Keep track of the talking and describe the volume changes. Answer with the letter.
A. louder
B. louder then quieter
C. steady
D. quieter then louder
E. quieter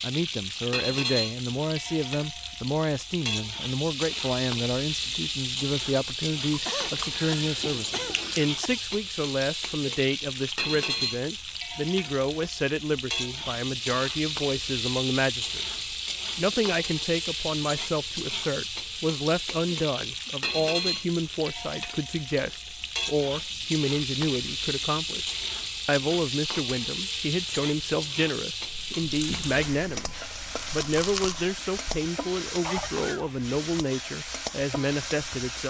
C.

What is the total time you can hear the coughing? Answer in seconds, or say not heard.
3 s.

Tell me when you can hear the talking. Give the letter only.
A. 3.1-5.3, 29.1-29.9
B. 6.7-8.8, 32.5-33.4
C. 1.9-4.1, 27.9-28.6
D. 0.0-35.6
D.